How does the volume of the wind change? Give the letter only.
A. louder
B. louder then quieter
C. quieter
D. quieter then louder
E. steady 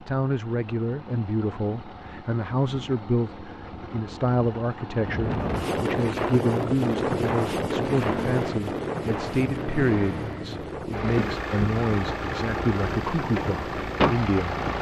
C.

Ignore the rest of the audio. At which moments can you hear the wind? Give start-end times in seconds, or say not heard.
5.0-14.7.